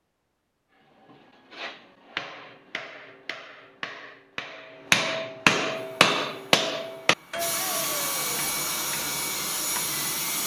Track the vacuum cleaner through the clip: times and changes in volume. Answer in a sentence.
You can hear the vacuum cleaner from 5.7 to 10.4 s, getting louder.